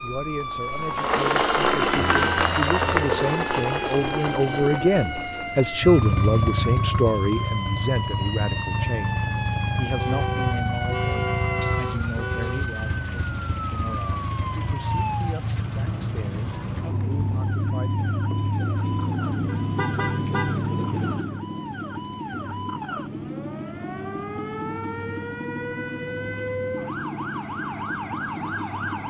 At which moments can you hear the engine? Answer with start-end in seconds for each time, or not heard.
0.0-29.0.